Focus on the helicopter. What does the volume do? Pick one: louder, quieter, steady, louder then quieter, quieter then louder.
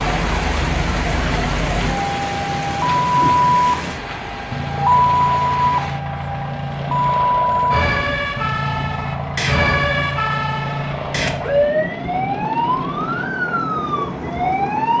steady.